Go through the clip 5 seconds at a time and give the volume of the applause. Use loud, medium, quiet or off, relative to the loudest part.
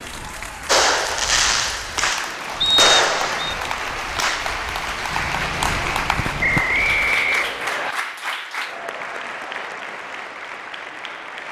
loud, loud, medium.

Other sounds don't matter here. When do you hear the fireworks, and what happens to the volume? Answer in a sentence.
You can hear the fireworks from 0.7 to 6.7 s, getting quieter.